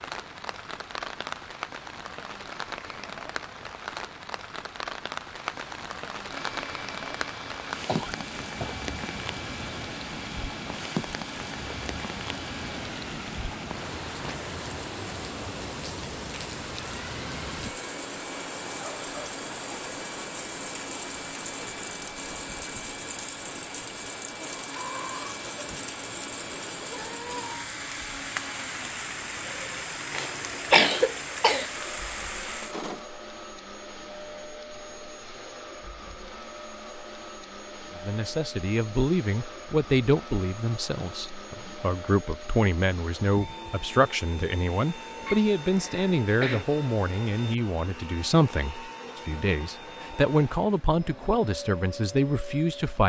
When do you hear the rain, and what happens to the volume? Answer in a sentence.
The rain can be heard from 0.0 to 33.0 s, at a steady volume.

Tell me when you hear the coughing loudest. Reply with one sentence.
The loudest moment of the coughing is at 31 seconds.